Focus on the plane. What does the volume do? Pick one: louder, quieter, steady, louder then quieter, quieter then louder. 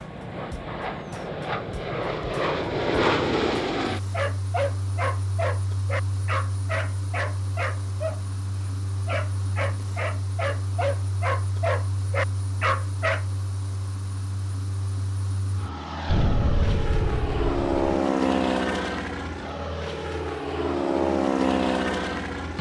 quieter then louder.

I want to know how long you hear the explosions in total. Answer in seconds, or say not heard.
2 s.